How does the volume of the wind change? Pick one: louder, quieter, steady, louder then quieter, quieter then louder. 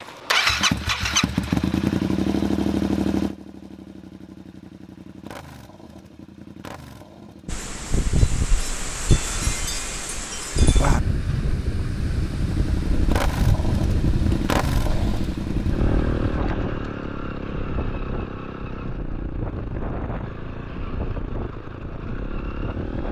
quieter.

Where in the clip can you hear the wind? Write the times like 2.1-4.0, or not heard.
7.5-23.0.